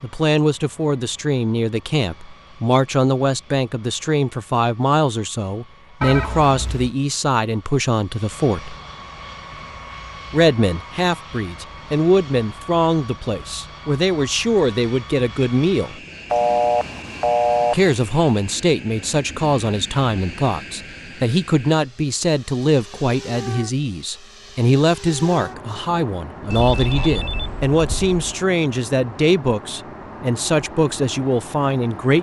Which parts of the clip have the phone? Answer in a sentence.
The phone can be heard from 6.0 to 6.9 s, from 16.3 to 17.9 s and from 26.5 to 28.2 s.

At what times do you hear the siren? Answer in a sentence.
The siren can't be heard in this clip.